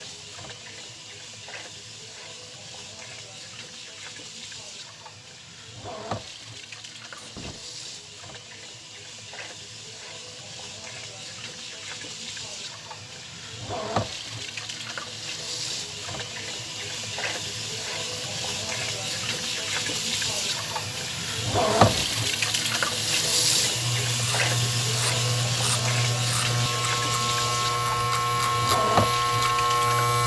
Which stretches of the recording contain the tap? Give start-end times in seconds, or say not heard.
0.0-30.2.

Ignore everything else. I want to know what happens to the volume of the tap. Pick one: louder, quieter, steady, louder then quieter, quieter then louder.
louder.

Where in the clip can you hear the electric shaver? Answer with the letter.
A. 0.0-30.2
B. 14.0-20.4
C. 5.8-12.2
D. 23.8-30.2
D.